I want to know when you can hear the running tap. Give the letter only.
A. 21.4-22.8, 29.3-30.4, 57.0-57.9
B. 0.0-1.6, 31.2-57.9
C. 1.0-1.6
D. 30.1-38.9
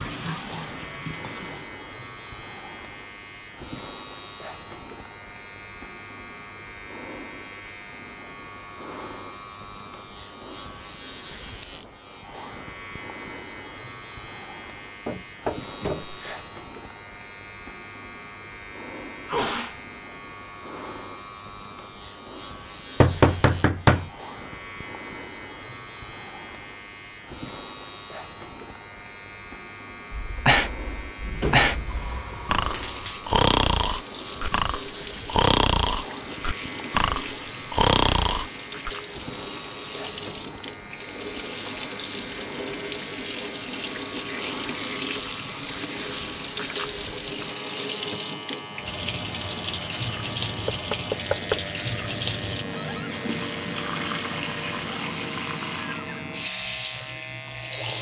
B.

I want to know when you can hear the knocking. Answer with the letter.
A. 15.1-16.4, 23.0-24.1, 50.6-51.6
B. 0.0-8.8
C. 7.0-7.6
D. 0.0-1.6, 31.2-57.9
A.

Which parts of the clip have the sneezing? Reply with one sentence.
The sneezing can be heard from 19.2 to 19.8 s.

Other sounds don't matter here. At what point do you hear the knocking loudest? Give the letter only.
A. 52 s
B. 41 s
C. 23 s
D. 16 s
C.